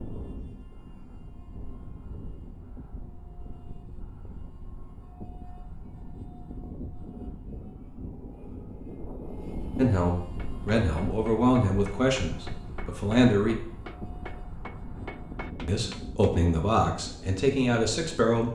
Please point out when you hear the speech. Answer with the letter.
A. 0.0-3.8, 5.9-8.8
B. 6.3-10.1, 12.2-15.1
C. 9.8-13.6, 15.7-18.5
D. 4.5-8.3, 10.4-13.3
C.